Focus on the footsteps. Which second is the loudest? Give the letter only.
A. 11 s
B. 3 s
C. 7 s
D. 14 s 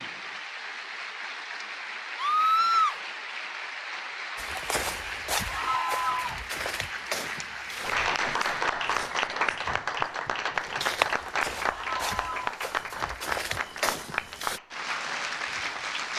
A.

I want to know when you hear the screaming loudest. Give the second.
3 s.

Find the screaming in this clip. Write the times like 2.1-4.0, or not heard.
2.1-3.0, 5.5-6.4, 11.7-12.5.